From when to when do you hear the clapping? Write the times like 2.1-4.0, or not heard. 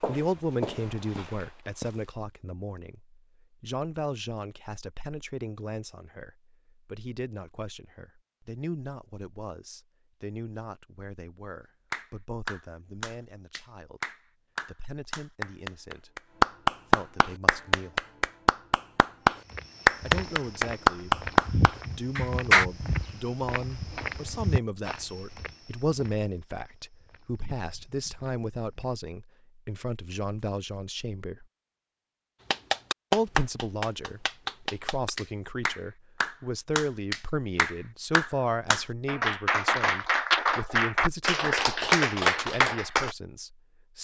11.9-22.6, 32.5-43.1.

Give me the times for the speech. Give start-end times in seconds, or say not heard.
0.0-14.0, 14.7-16.1, 16.9-18.0, 20.0-31.4, 33.1-43.9.